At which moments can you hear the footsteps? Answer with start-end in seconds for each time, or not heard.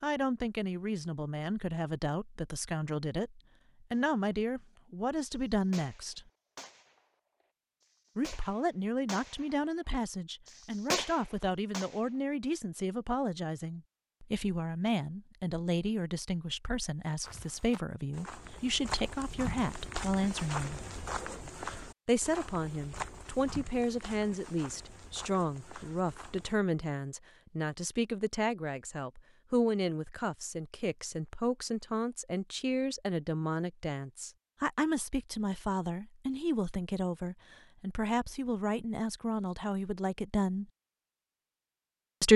17.2-26.6.